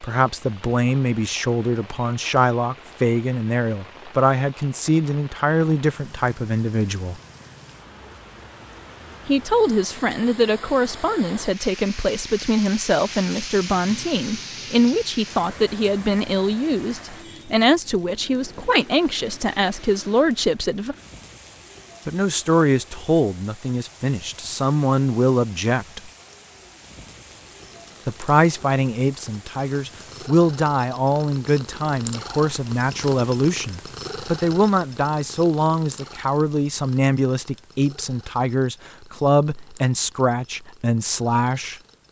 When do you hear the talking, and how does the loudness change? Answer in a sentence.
The talking can be heard from 0.0 to 7.2 s, at a steady volume; from 9.2 to 20.9 s, at a steady volume; from 22.1 to 26.1 s, getting quieter then louder; and from 28.1 to 41.8 s, at a steady volume.